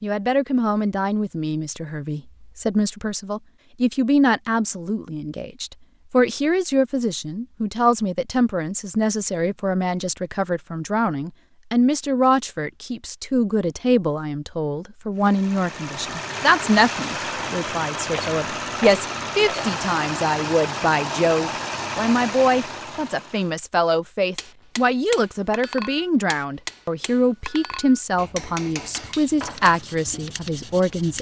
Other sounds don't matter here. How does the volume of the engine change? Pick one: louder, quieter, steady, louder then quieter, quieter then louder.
steady.